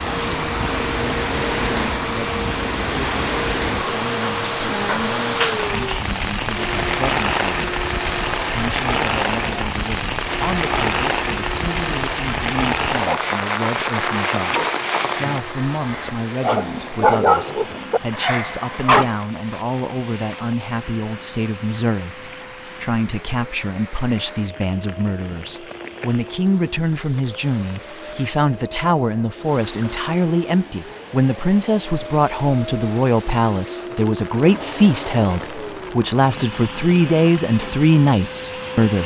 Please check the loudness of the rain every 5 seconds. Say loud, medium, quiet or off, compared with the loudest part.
loud, loud, loud, medium, quiet, quiet, quiet, quiet.